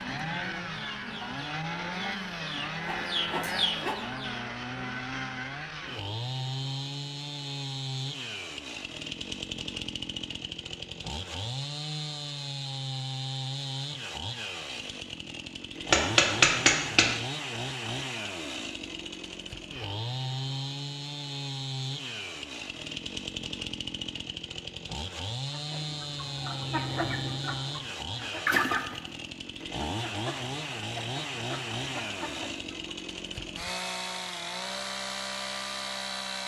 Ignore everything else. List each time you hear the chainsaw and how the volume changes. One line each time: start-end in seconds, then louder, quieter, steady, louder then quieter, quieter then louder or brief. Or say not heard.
0.0-36.4 steady.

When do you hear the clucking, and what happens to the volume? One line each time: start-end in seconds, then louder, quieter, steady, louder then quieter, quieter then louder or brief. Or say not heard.
0.0-4.5 louder
25.5-33.0 louder then quieter.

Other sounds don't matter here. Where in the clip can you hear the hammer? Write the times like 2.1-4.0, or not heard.
15.9-17.1.